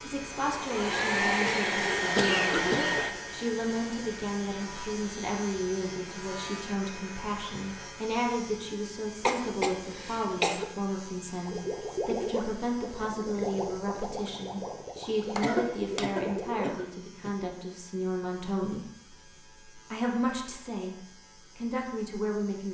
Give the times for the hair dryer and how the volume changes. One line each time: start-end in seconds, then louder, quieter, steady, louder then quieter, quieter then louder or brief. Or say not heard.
0.3-8.0 quieter.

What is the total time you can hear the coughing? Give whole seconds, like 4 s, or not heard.
5 s.